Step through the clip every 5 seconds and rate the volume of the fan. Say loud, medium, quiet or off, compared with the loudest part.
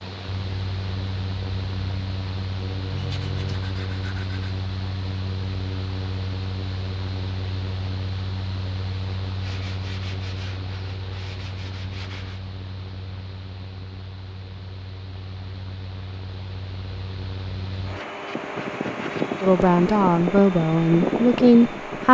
medium, medium, quiet, medium, loud.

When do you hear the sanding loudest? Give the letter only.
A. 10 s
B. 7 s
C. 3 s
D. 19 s
C.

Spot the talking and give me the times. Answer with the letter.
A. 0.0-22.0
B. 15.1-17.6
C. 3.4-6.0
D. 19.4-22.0
D.